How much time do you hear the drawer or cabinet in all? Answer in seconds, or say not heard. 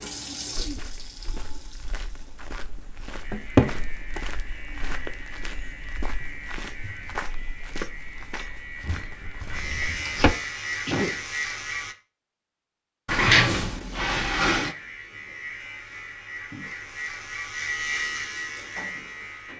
4 s.